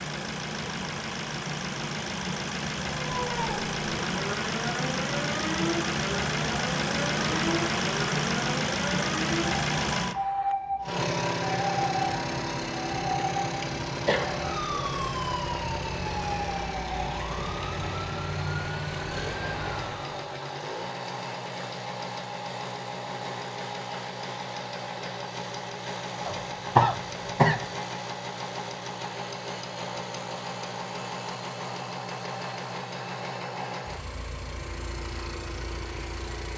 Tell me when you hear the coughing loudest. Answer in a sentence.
The loudest moment of the coughing is at 27 seconds.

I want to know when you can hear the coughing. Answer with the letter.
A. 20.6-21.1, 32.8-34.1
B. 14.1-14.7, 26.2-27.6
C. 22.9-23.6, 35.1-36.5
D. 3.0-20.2
B.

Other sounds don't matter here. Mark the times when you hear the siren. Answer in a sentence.
The siren can be heard from 3.0 to 20.2 s.